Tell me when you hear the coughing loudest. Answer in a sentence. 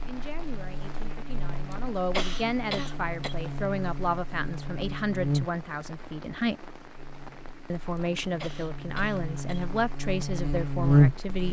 The volume of the coughing peaks at 2 seconds.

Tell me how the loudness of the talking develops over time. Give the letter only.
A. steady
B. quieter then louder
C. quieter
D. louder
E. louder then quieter
D.